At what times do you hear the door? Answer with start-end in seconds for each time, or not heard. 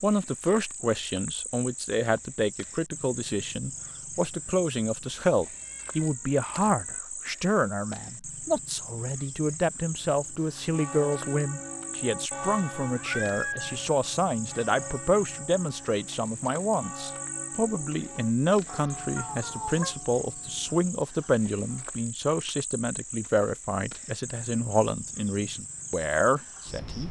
not heard.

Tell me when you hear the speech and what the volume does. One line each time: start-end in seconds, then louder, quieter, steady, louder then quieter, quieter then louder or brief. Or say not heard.
0.0-27.0 steady.